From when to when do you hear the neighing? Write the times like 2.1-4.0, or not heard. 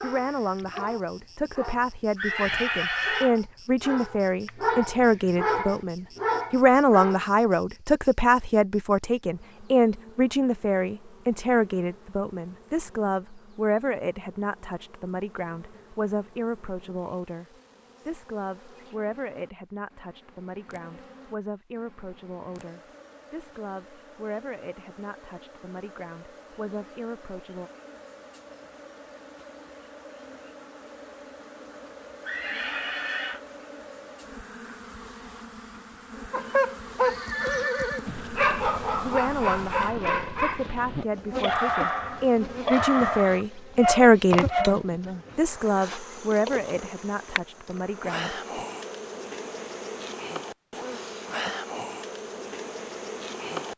2.1-3.4, 32.2-33.4, 37.0-38.0.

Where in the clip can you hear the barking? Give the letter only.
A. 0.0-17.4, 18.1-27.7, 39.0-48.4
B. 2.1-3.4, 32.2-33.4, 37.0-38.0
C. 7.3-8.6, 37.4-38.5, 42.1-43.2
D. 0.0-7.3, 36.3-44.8
D.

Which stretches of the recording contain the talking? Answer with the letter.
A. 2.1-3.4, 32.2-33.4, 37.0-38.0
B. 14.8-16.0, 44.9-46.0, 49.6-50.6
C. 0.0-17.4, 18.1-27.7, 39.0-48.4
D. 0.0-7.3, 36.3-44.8
C.